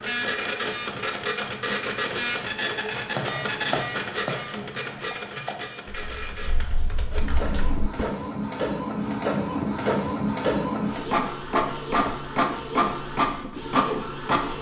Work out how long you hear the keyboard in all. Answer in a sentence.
You can hear the keyboard for 5 seconds altogether.